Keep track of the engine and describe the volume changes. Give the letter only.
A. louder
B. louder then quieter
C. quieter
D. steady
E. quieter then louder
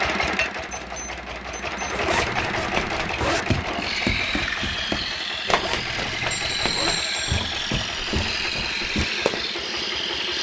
D.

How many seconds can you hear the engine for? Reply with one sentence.
You can hear the engine for 10 seconds altogether.